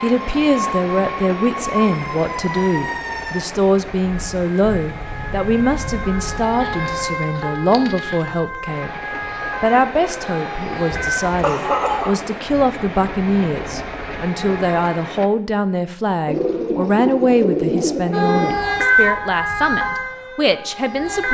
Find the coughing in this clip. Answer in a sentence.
You can hear the coughing from 10.9 to 12.2 s.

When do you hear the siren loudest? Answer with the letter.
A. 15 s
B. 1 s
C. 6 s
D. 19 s
D.